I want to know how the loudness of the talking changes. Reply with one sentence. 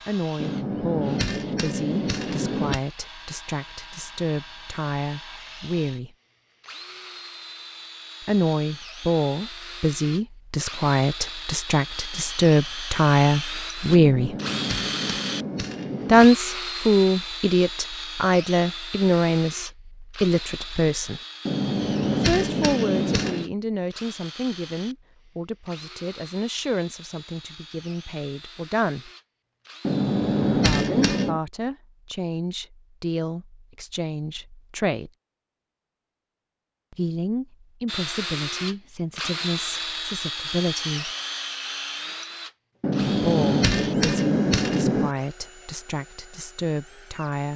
The volume of the talking goes up, then down.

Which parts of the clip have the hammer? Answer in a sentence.
You can hear the hammer from 0.4 to 2.8 s, from 13.9 to 16.3 s, from 21.4 to 23.5 s, from 29.8 to 31.4 s and from 42.8 to 45.1 s.